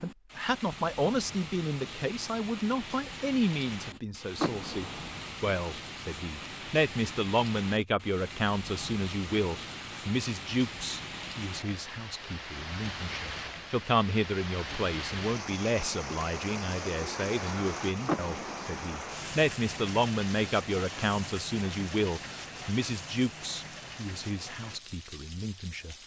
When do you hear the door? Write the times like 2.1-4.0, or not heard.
4.3-5.2, 18.1-18.7.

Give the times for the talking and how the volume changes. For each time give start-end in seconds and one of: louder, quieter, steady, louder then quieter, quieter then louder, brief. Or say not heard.
0.0-25.9 steady.